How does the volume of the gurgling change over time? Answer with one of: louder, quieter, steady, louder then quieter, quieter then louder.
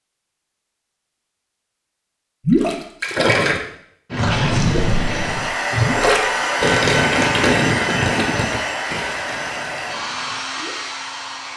quieter.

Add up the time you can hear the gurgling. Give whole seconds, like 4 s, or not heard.
8 s.